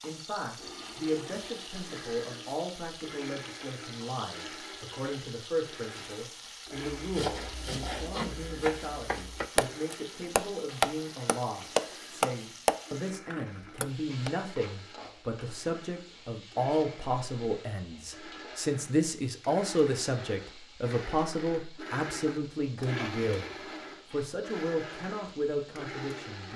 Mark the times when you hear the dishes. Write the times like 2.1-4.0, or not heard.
not heard.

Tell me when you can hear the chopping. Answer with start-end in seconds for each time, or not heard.
7.0-14.3.